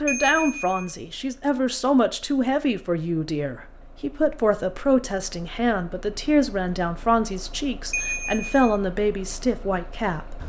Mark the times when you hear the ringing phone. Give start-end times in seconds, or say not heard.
0.1-0.9, 7.9-8.8.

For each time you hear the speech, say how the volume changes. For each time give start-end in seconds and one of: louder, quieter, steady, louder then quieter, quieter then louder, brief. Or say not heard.
0.0-10.4 steady.